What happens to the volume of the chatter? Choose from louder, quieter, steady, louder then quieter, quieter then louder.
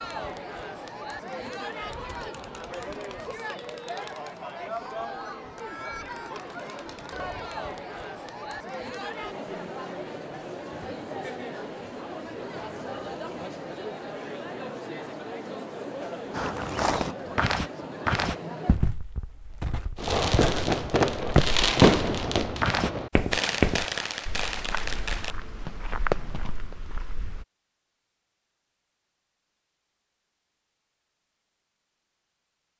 steady.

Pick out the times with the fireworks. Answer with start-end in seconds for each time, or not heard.
19.9-26.8.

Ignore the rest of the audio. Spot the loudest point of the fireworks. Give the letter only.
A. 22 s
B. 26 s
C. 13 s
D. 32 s
A.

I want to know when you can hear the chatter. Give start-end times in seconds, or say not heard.
0.0-18.8.